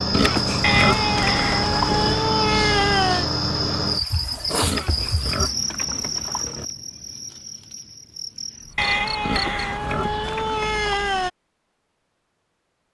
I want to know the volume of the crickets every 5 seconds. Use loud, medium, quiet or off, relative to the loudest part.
loud, medium, off.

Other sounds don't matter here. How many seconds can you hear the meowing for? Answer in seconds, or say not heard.
5 s.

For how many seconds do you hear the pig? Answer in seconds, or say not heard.
6 s.